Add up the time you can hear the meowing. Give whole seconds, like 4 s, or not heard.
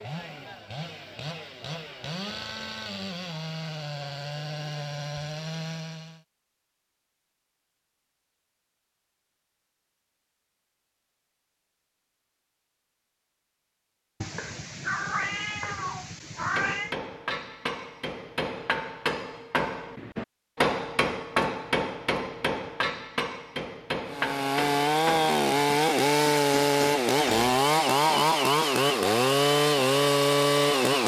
3 s.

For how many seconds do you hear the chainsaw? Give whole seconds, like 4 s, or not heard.
13 s.